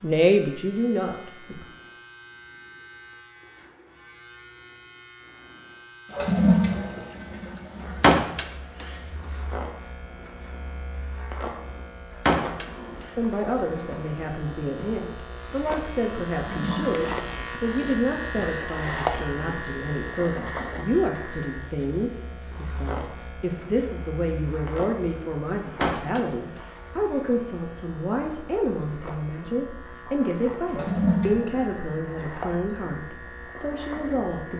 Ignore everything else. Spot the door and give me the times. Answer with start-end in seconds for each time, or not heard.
8.0-8.8, 12.2-13.1, 25.8-26.6.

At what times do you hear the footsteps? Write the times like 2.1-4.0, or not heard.
not heard.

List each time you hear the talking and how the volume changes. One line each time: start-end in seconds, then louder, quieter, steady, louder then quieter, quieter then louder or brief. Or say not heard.
0.0-1.6 brief
13.2-34.5 steady.